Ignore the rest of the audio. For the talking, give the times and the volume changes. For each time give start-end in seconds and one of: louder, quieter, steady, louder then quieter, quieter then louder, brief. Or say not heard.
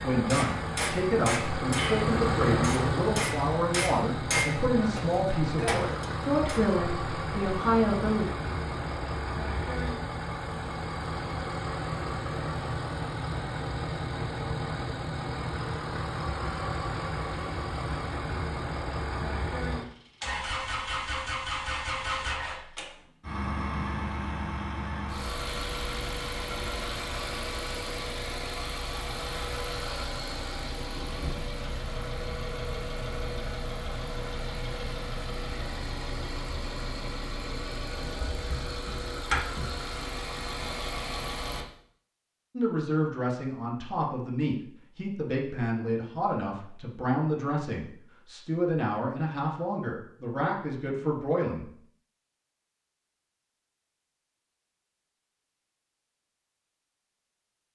0.0-8.2 steady
42.5-51.6 steady.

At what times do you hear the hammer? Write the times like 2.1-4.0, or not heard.
0.3-6.6.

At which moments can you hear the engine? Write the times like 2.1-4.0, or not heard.
0.0-41.6.